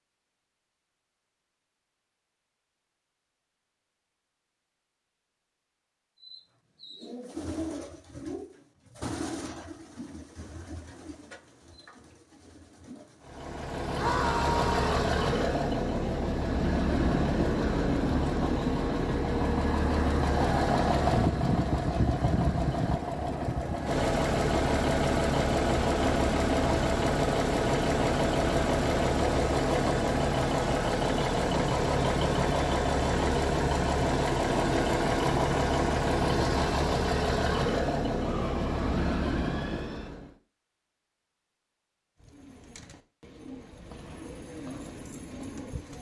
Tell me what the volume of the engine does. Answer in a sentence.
The loudness of the engine stays about the same.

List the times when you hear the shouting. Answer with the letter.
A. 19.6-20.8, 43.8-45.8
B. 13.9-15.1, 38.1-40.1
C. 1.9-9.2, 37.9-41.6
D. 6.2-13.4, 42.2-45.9
B.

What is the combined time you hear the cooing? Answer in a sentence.
The cooing can be heard for 11 seconds in total.